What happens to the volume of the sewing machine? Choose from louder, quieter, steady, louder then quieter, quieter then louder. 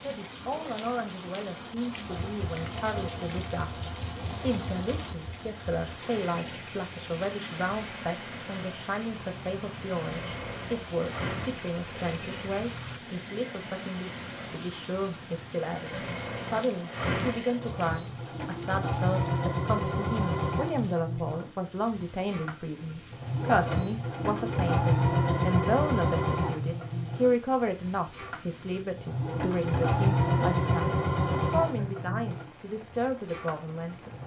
louder.